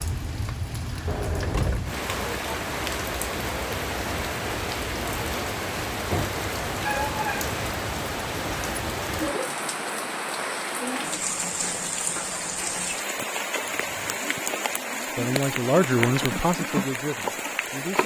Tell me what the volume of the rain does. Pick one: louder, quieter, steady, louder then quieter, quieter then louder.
steady.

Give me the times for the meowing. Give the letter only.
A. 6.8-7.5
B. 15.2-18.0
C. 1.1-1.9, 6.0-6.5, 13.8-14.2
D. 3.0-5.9
A.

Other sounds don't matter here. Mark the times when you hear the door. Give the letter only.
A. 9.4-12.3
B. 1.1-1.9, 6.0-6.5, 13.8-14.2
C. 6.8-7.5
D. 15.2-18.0
B.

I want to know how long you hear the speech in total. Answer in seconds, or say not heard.
3 s.